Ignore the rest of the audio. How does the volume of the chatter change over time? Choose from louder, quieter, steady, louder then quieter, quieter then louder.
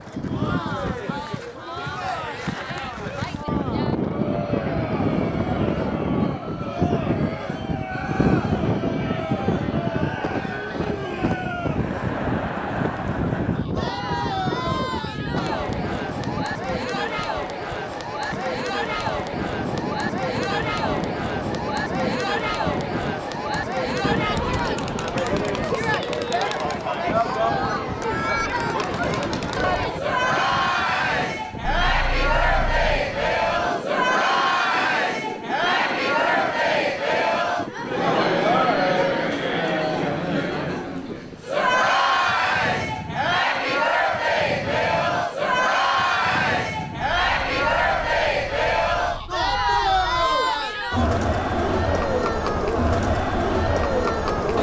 louder.